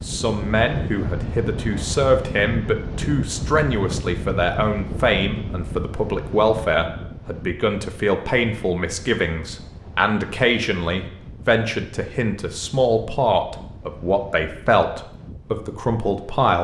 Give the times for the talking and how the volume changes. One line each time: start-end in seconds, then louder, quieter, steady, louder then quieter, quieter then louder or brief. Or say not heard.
0.0-16.6 steady.